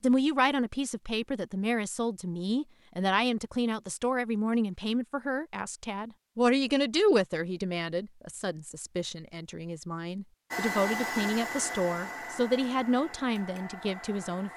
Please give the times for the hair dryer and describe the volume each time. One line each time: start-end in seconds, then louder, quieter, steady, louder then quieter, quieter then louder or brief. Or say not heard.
10.5-14.5 quieter.